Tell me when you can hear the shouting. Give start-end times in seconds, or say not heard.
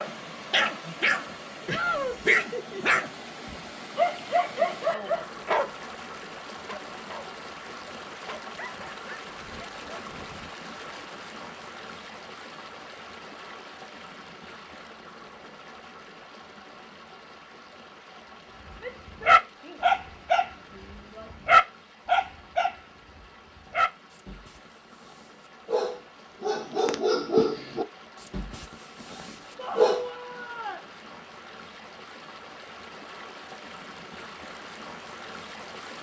1.6-2.4, 18.8-19.9, 20.7-21.3, 29.6-30.8.